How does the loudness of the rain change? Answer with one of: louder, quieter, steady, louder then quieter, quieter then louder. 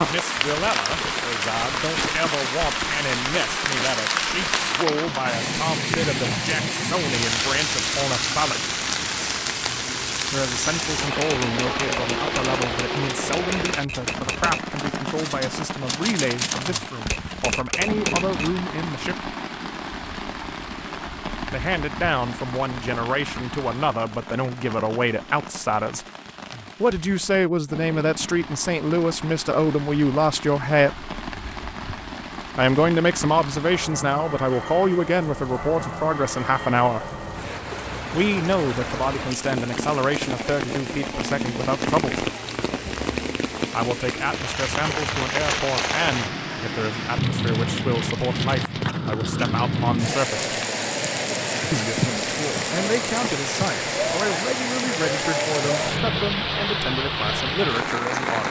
quieter then louder.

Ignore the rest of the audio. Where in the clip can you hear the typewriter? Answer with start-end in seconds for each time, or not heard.
11.1-18.6.